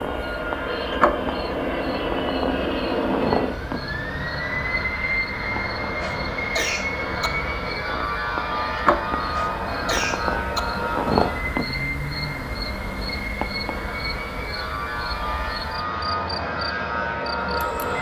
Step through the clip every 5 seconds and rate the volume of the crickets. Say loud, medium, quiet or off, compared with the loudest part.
loud, loud, loud, medium.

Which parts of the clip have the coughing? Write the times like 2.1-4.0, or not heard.
6.0-7.3, 9.3-10.6.